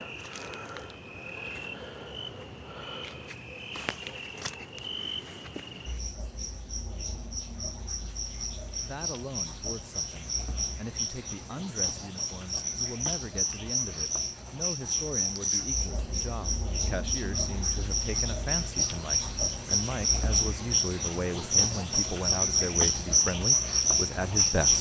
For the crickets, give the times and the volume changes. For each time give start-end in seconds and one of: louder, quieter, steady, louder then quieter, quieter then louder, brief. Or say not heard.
0.0-24.7 louder.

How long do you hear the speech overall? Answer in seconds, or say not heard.
16 s.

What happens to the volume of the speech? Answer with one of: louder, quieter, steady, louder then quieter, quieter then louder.
louder.